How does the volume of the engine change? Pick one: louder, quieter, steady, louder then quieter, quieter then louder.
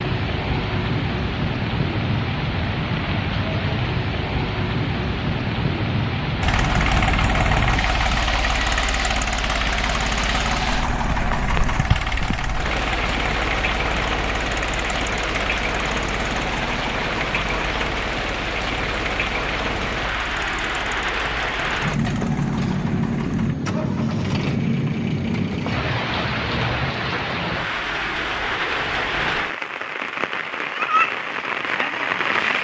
quieter.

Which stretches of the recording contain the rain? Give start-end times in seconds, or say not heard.
0.0-32.6.